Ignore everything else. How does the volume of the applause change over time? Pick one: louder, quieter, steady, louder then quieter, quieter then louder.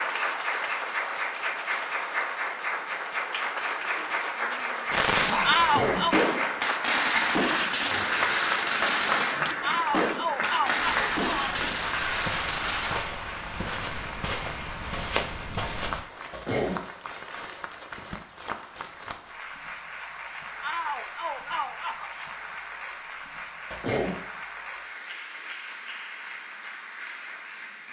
quieter.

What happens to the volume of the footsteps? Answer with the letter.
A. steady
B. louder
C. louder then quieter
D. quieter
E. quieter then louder
B.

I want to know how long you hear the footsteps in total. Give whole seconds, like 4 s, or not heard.
5 s.